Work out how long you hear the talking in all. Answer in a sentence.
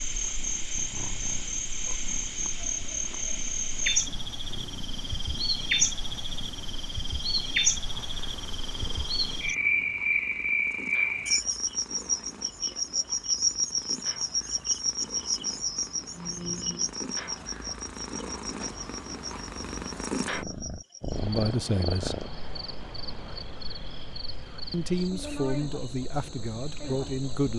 The talking can be heard for 4 seconds in total.